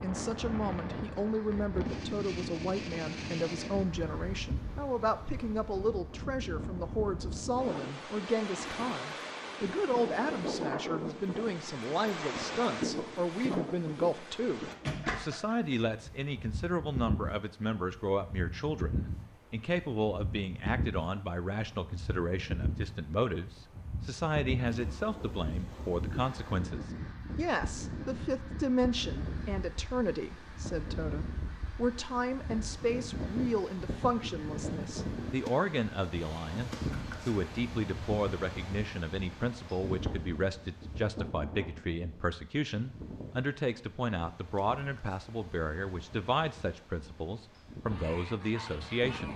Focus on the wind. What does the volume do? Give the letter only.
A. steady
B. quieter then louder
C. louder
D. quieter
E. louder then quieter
D.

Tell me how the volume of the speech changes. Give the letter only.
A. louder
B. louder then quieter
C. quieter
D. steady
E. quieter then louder
D.